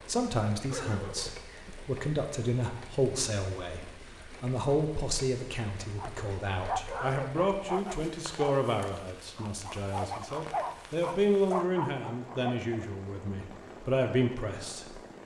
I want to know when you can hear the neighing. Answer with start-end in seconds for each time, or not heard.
0.7-1.7.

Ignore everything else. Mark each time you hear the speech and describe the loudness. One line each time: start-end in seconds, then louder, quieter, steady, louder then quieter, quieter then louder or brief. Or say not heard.
0.0-15.0 steady.